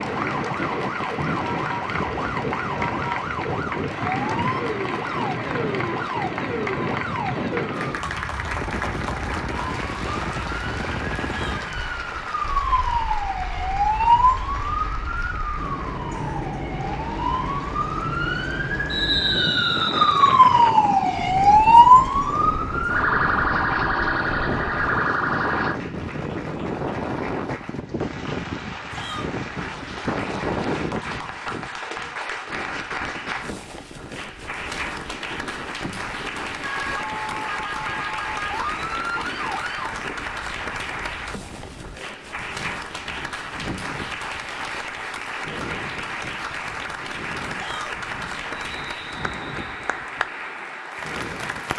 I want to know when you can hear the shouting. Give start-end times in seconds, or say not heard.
11.2-11.7, 28.9-29.3, 47.5-48.0.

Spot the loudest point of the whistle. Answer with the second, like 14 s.
19 s.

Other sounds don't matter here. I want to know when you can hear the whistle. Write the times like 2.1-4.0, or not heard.
18.9-20.4, 48.5-50.0.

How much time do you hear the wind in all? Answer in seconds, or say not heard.
52 s.